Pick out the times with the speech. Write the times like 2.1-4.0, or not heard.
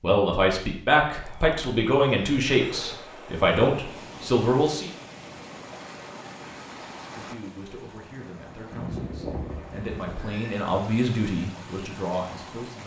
0.0-4.9, 7.2-12.8.